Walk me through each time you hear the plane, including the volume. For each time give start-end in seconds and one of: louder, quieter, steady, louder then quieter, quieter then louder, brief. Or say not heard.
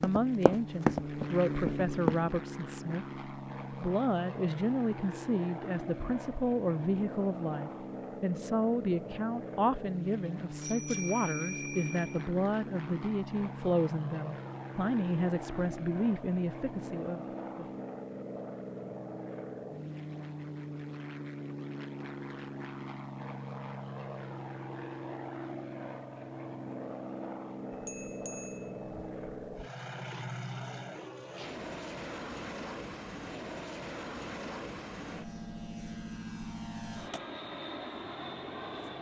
0.0-38.9 steady.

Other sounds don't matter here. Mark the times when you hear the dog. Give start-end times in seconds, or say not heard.
not heard.